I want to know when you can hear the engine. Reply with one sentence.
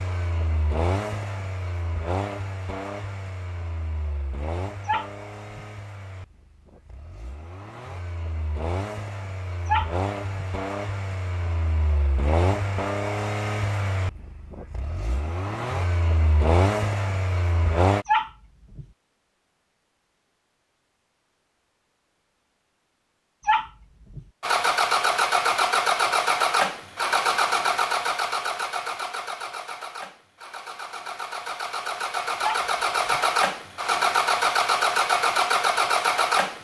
You can hear the engine from 0.0 to 18.1 s and from 24.4 to 36.5 s.